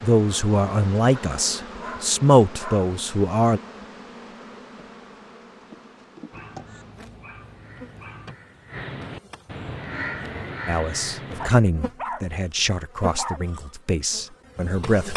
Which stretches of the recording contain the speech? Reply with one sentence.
The speech can be heard from 0.0 to 3.6 s and from 10.7 to 15.1 s.